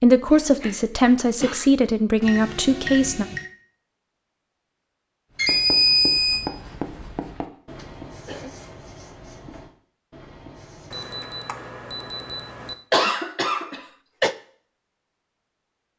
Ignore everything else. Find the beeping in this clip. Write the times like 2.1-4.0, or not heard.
2.2-3.5, 5.3-6.5, 10.9-12.8.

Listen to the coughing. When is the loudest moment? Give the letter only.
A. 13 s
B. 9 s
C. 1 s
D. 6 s
A.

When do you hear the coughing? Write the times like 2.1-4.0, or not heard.
0.3-1.7, 7.8-8.6, 12.9-14.3.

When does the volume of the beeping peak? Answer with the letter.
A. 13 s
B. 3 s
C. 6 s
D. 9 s
C.